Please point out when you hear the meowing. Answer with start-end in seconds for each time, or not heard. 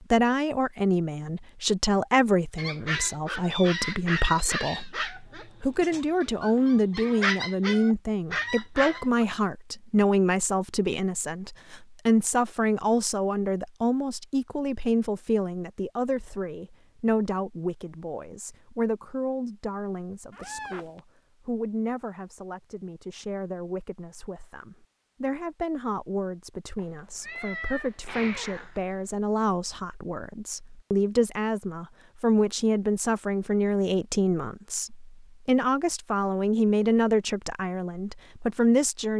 3.5-5.0, 20.3-21.0, 26.8-29.0.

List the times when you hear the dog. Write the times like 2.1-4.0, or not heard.
2.5-9.2.